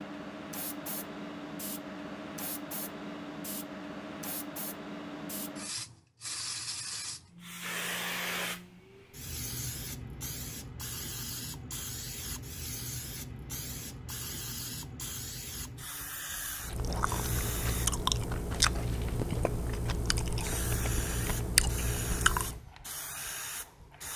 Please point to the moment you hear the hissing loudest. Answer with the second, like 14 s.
8 s.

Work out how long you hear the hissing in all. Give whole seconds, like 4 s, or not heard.
24 s.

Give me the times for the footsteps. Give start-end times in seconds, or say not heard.
not heard.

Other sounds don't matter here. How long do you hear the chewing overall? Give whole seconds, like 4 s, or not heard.
6 s.